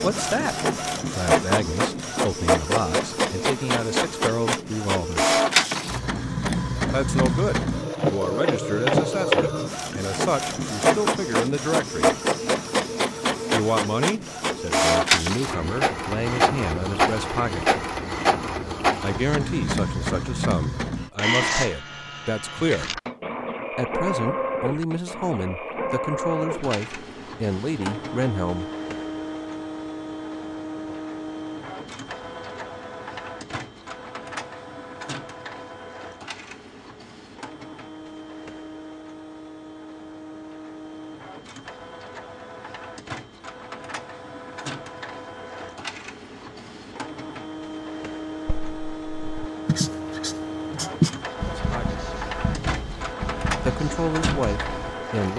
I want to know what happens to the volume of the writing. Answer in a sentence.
The loudness of the writing goes up, then down.